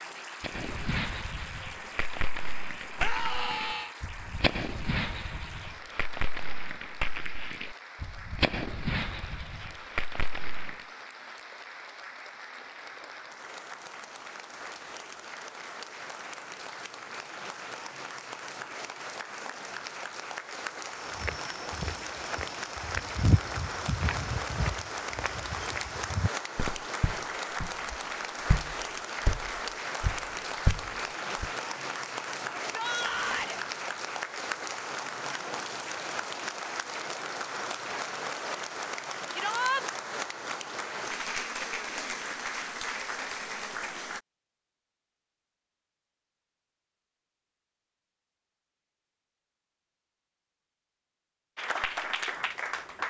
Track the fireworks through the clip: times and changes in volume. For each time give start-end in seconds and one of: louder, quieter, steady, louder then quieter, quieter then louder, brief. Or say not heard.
0.4-10.8 steady.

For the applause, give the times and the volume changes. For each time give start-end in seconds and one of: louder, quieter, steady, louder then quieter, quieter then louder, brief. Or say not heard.
0.0-44.2 louder
51.5-53.0 brief.